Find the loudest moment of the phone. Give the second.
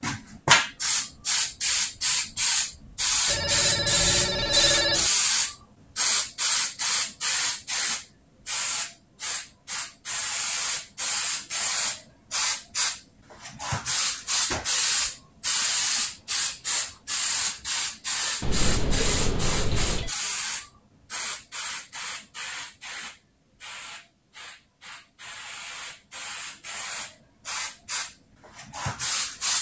5 s.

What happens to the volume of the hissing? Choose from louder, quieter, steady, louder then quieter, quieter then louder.
quieter.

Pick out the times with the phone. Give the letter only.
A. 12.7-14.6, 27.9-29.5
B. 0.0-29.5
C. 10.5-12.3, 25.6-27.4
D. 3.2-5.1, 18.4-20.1
D.